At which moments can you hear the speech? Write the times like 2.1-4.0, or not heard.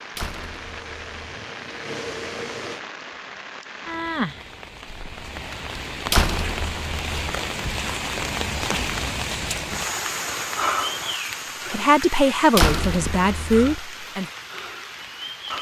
11.7-14.2.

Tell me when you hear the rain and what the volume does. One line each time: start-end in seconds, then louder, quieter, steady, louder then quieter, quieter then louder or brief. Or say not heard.
0.0-15.5 louder then quieter.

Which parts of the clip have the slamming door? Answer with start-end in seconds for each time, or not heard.
0.1-1.3, 6.1-7.3, 12.6-13.8.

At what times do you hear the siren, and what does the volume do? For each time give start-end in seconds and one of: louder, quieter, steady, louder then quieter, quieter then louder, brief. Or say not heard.
not heard.